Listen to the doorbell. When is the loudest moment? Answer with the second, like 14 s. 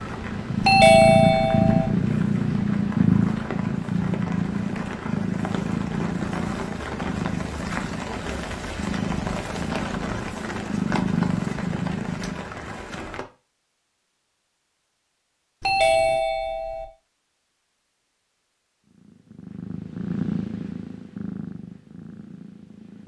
1 s.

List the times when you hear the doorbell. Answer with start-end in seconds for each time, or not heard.
0.6-1.9, 15.6-16.9.